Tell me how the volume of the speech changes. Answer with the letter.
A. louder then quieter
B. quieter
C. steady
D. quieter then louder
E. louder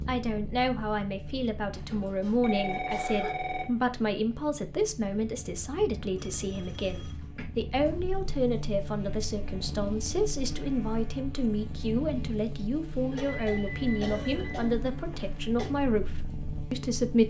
C.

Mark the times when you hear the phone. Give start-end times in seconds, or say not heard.
2.4-3.8, 6.2-7.2, 13.3-14.7.